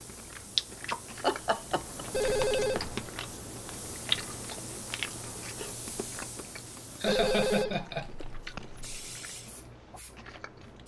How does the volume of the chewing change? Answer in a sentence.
The loudness of the chewing goes down.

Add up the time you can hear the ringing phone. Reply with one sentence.
You can hear the ringing phone for 3 seconds altogether.